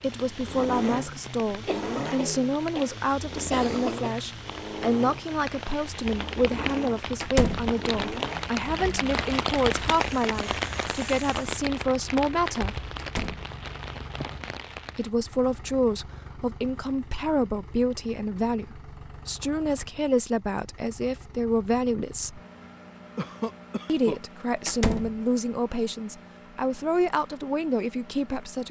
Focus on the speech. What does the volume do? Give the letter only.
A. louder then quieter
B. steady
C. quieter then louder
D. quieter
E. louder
B.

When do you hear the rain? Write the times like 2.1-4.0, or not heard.
0.0-15.1.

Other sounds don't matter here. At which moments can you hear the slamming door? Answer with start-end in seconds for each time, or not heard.
7.2-7.8, 12.9-13.4, 24.6-25.2.